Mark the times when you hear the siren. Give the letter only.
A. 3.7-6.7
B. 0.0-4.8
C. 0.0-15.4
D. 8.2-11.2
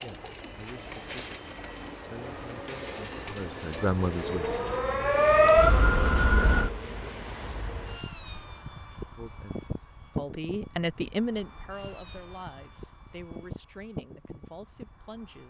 A.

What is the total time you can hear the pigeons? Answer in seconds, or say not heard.
5 s.